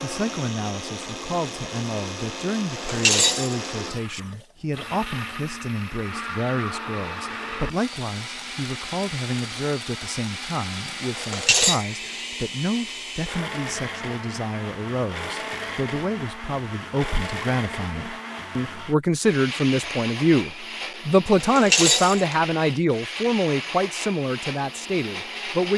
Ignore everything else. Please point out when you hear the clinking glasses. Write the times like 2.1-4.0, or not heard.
2.8-4.2, 11.2-11.8, 21.4-22.4.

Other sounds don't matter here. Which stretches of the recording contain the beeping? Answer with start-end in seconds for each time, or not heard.
not heard.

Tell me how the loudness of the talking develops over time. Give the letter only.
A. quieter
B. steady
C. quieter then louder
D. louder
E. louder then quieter
D.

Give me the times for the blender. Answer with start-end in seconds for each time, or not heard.
0.0-25.7.